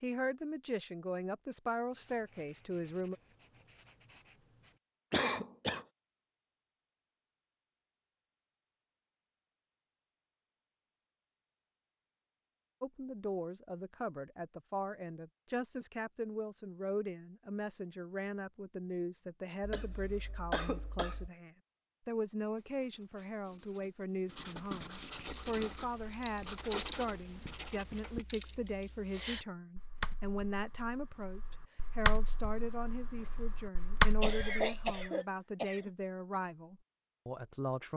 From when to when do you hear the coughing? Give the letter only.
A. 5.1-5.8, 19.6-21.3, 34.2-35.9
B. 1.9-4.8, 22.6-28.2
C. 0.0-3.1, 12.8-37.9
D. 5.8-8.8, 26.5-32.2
A.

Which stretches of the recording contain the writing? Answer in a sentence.
You can hear the writing from 1.9 to 4.8 s and from 22.6 to 28.2 s.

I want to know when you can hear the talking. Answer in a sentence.
You can hear the talking from 0.0 to 3.1 s and from 12.8 to 37.9 s.